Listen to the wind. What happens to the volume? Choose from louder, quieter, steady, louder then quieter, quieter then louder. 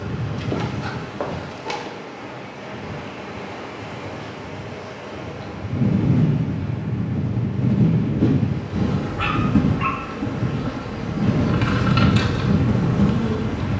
louder.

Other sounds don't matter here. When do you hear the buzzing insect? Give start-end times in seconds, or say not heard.
8.7-13.7.